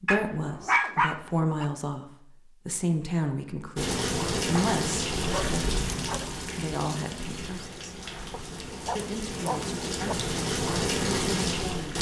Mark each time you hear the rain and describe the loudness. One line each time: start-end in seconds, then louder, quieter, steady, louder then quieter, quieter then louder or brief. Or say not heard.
3.8-11.9 quieter then louder.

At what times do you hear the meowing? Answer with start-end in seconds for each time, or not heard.
not heard.